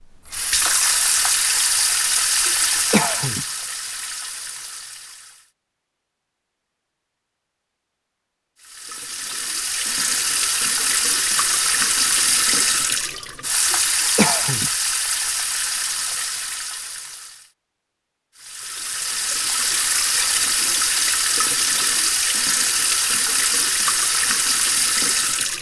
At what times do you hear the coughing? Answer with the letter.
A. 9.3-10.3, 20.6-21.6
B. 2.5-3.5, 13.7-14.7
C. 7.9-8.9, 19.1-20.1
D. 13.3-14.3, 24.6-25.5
B.